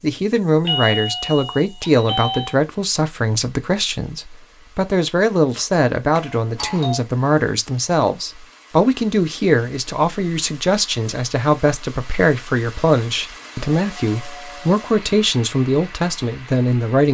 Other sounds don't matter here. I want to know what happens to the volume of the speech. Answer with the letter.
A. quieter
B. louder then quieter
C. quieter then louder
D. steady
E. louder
D.